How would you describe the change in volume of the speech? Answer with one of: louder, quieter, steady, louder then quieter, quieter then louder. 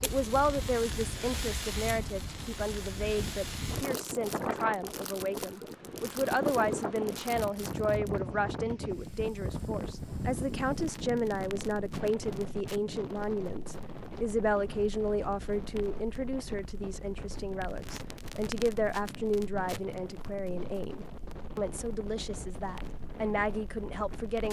steady.